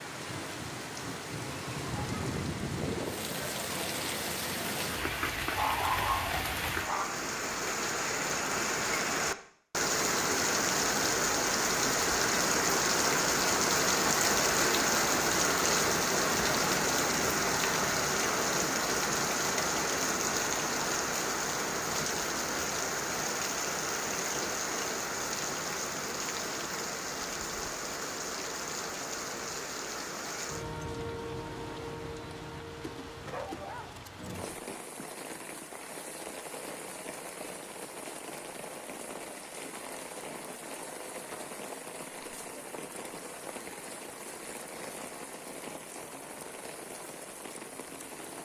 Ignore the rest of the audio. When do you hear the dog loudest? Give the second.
6 s.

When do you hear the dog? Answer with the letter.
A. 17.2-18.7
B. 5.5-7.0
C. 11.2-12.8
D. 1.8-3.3
B.